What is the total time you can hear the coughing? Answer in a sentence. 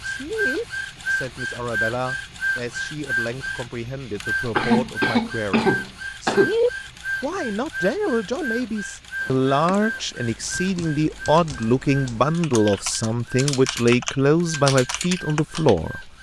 The coughing can be heard for 2 seconds in total.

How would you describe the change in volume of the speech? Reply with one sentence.
The volume of the speech goes up.